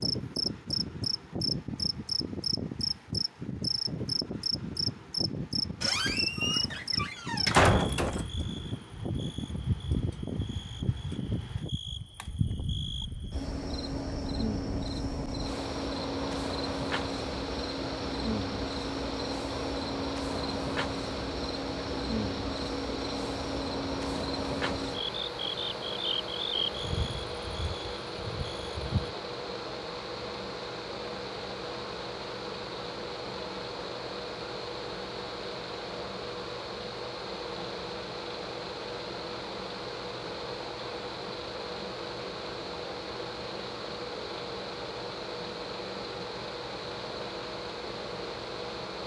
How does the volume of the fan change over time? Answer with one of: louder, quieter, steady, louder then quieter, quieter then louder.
steady.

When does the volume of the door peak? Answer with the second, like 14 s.
8 s.